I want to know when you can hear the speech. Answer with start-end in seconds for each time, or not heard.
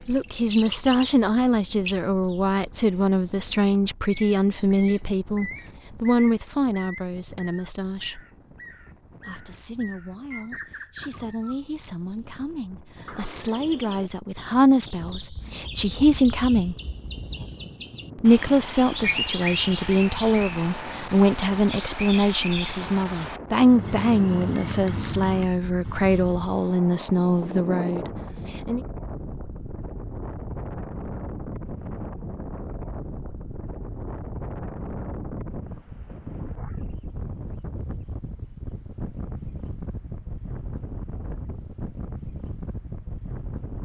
0.1-8.2, 9.2-16.8, 18.1-28.8.